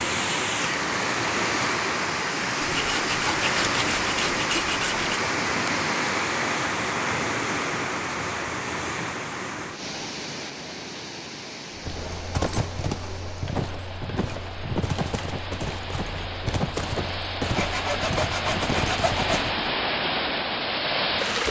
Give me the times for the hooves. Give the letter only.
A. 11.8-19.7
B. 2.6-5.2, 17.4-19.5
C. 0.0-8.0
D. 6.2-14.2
A.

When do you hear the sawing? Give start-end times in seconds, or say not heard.
2.6-5.2, 17.4-19.5.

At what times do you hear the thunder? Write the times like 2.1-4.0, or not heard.
not heard.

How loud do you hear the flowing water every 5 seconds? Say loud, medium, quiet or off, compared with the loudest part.
loud, loud, quiet, medium, loud.